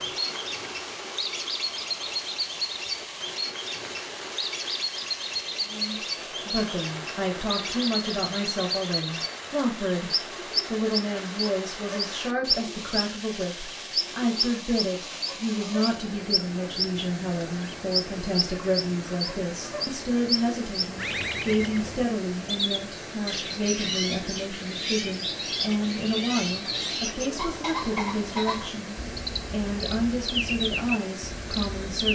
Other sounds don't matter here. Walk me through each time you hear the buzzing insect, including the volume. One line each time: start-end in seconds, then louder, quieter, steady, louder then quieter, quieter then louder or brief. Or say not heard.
not heard.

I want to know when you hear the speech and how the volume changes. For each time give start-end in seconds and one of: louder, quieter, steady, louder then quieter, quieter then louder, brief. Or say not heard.
5.7-32.1 steady.